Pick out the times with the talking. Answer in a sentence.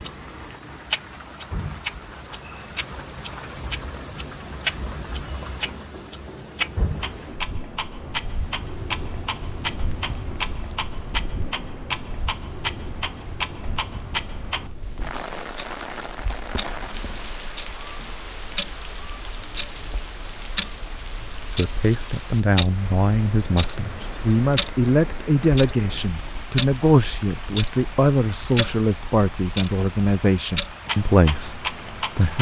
You can hear the talking from 21.5 to 32.3 s.